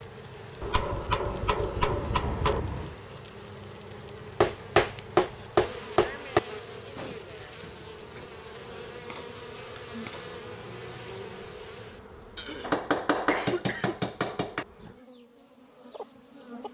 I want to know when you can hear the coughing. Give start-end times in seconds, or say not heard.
1.9-3.0, 7.0-8.3, 12.3-13.9.